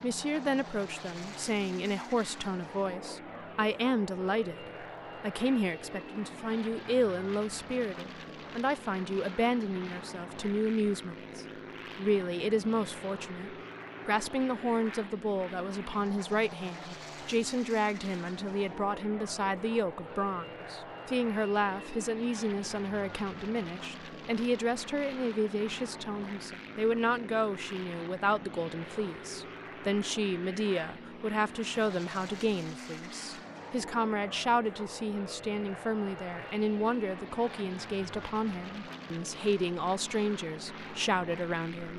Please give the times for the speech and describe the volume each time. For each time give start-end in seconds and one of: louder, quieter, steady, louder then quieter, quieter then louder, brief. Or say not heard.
0.0-41.9 steady.